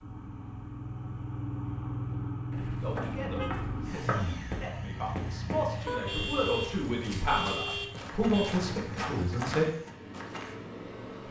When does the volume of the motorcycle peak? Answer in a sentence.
The loudest moment of the motorcycle is at 2 seconds.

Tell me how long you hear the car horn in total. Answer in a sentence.
You can hear the car horn for 4 seconds altogether.